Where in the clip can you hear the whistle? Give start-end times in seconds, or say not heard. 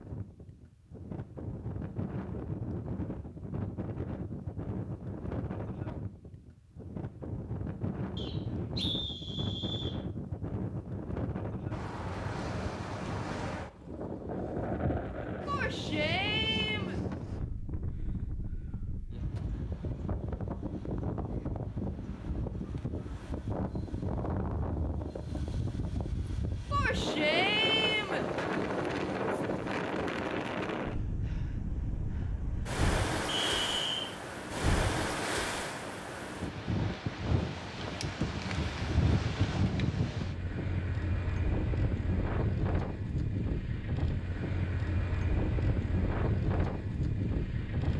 8.2-9.9, 33.2-34.1.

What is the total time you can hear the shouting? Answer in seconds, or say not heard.
3 s.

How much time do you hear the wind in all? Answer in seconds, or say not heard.
48 s.